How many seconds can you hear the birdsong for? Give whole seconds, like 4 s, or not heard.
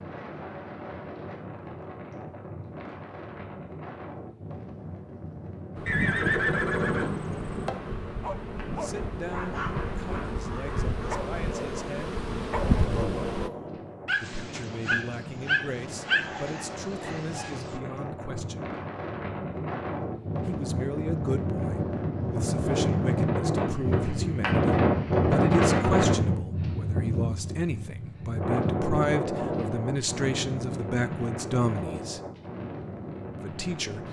not heard.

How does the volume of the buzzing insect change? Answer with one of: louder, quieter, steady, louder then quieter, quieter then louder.
louder.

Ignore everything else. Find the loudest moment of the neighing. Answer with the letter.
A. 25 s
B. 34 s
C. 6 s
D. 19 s
C.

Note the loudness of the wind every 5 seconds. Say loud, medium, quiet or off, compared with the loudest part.
quiet, quiet, quiet, medium, loud, loud, medium.